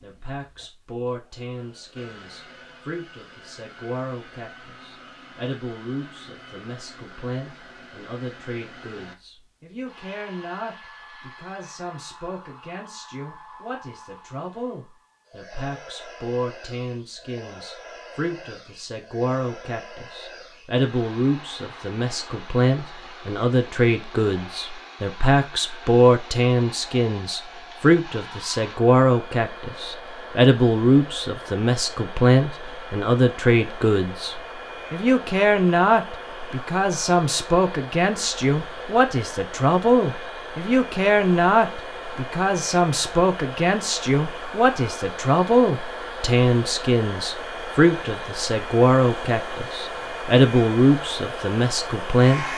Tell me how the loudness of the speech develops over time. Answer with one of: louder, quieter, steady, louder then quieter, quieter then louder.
louder.